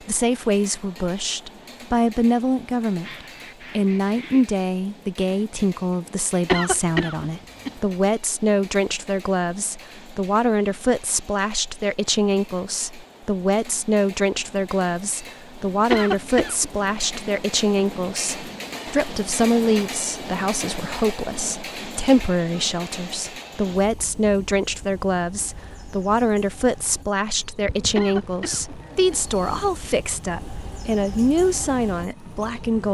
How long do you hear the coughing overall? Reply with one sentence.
You can hear the coughing for 3 seconds altogether.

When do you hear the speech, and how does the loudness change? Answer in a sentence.
You can hear the speech from 0.1 to 32.8 s, at a steady volume.